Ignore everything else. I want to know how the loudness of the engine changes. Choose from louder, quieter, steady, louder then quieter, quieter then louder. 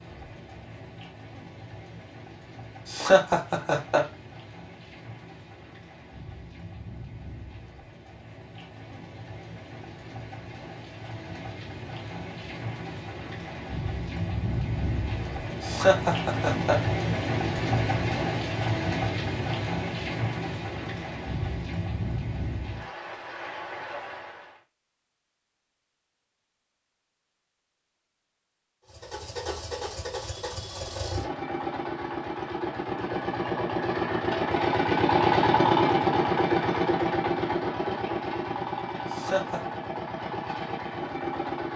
louder then quieter.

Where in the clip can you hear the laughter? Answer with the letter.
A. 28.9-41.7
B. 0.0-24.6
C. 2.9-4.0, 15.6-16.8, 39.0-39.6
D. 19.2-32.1
C.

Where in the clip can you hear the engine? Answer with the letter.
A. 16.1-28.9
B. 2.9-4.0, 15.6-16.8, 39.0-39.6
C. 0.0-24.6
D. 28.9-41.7
D.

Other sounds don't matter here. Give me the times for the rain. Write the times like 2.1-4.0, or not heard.
0.0-24.6.